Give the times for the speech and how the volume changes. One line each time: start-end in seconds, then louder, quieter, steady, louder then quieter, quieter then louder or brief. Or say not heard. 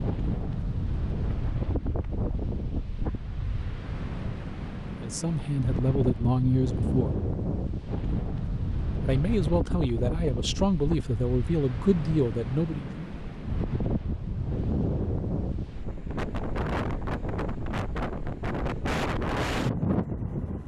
5.0-7.2 brief
9.0-13.1 steady.